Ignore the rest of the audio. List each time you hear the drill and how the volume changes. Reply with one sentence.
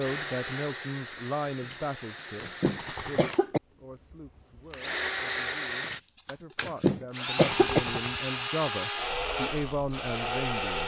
The drill can be heard from 0.0 to 10.8 s, getting louder.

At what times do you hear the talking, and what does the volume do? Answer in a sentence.
The talking can be heard from 0.0 to 10.8 s, getting quieter then louder.